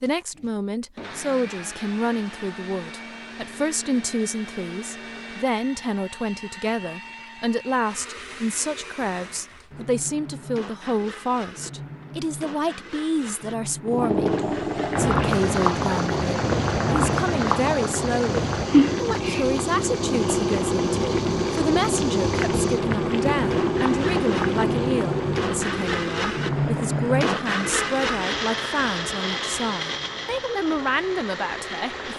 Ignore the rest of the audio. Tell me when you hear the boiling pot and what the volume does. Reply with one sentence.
The boiling pot can be heard from 13.8 to 32.1 s, getting quieter.